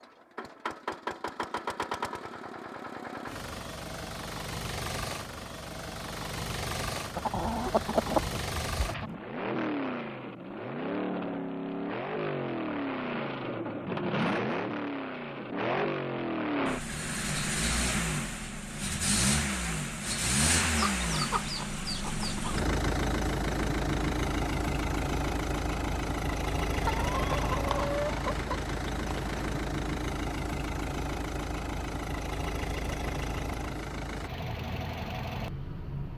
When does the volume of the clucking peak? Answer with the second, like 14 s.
8 s.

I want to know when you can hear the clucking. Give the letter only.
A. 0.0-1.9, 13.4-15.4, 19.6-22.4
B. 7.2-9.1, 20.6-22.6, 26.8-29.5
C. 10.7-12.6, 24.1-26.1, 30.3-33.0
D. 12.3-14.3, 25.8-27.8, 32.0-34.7
B.